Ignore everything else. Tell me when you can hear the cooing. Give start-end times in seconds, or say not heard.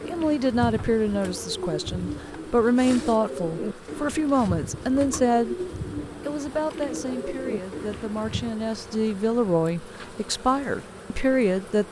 0.0-8.6.